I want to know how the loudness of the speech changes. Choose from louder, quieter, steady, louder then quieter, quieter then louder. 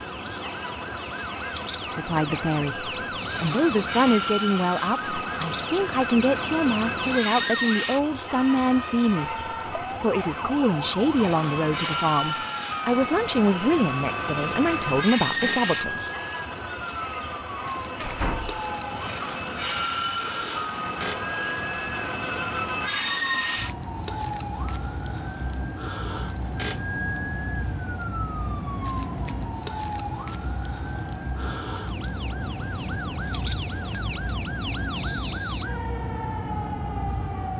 steady.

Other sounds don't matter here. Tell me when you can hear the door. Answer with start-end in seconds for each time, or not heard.
18.0-18.6.